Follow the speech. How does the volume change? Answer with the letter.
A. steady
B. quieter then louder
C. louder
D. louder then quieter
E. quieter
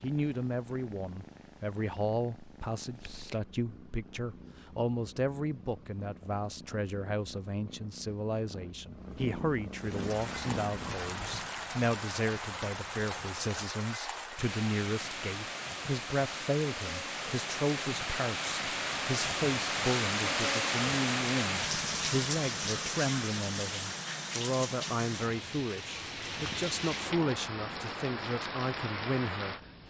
A.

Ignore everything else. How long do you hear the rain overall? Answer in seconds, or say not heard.
20 s.